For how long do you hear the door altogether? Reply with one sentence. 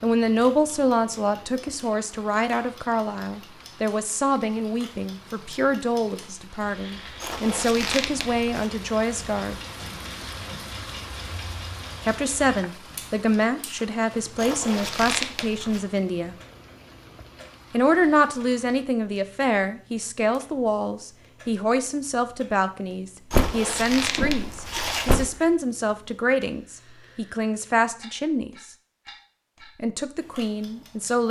The door can be heard for 2 seconds in total.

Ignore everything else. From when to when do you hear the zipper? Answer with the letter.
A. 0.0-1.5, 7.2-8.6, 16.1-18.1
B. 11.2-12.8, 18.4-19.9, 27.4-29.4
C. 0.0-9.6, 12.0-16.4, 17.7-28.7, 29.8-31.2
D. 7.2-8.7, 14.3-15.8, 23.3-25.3
D.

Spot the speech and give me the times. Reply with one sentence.
The speech can be heard from 0.0 to 9.6 s, from 12.0 to 16.4 s, from 17.7 to 28.7 s and from 29.8 to 31.2 s.